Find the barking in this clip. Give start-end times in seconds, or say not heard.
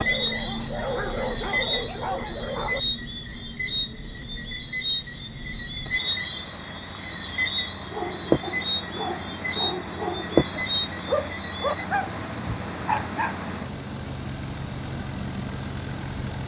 0.0-2.8, 7.8-13.3.